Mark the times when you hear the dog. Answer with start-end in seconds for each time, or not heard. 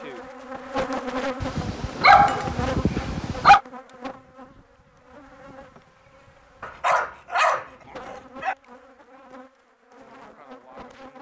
1.4-3.6, 6.6-8.6.